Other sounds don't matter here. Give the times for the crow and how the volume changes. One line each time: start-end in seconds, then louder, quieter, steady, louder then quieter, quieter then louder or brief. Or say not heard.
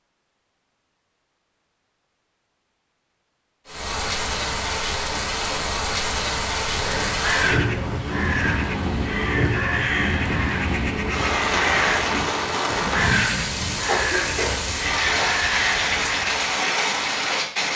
6.5-16.4 steady.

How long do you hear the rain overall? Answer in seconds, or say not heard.
14 s.